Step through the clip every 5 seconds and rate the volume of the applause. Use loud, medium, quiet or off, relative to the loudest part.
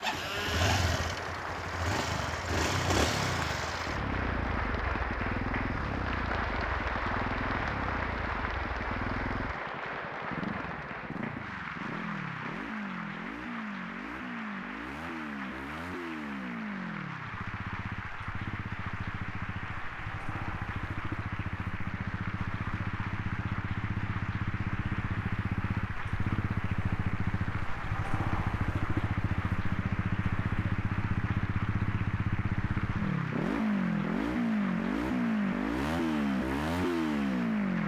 loud, loud, medium, medium, medium, medium, medium, medium.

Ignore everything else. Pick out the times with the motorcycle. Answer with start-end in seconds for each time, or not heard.
0.0-37.8.